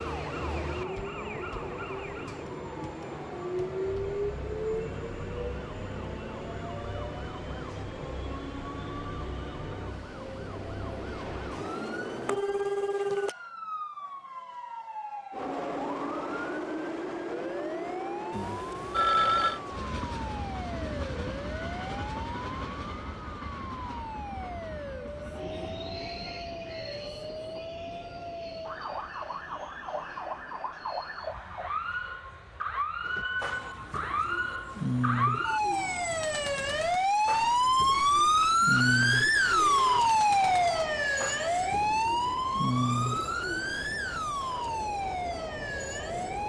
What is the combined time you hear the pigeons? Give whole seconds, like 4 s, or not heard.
11 s.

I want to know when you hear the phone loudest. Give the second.
19 s.